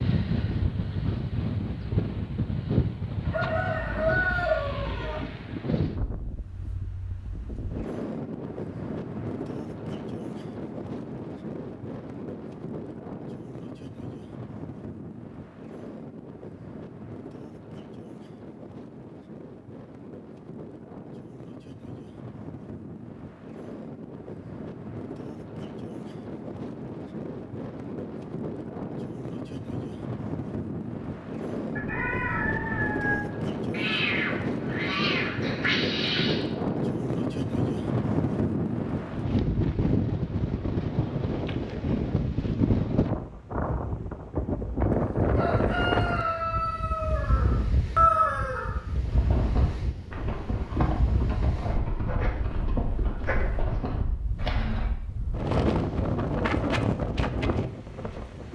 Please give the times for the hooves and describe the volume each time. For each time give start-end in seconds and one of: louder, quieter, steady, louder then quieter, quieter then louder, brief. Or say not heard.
49.0-54.9 steady.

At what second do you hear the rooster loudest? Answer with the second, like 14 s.
48 s.